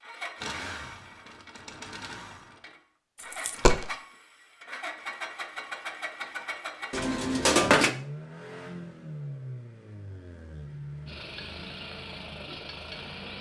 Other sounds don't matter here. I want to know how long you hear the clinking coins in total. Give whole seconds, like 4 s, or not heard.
2 s.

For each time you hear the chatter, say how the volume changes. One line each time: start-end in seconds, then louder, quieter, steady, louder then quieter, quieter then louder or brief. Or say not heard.
not heard.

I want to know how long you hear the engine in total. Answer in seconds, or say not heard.
13 s.